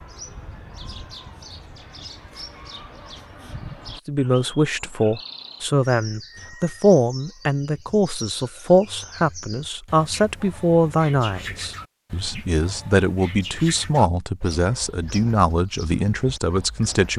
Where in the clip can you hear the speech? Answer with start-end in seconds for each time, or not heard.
4.0-17.1.